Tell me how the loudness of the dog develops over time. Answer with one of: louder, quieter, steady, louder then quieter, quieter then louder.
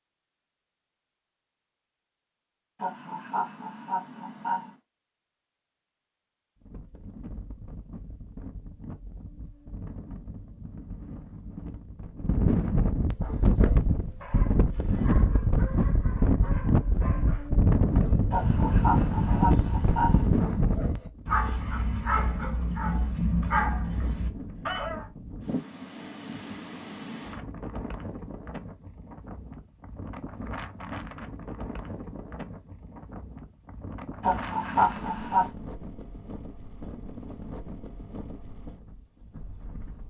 louder.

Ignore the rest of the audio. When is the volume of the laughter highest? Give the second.
35 s.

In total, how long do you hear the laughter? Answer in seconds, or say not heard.
5 s.